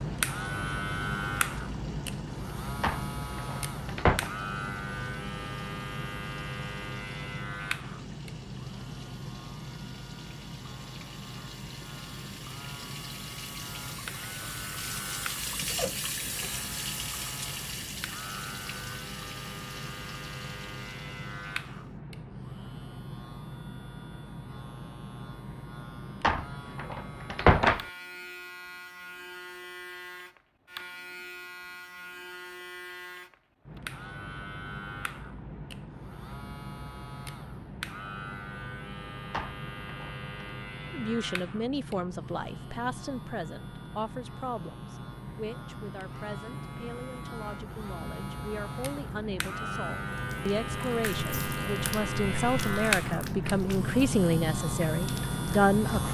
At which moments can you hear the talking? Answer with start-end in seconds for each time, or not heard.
40.9-56.0.